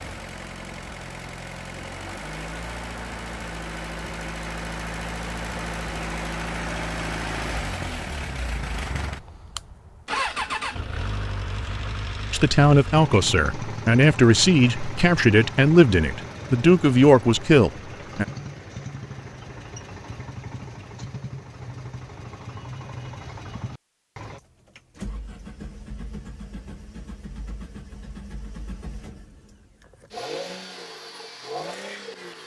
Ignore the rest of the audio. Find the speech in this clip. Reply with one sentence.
The speech can be heard from 12.3 to 18.2 s.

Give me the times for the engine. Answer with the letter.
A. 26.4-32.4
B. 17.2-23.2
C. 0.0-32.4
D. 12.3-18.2
C.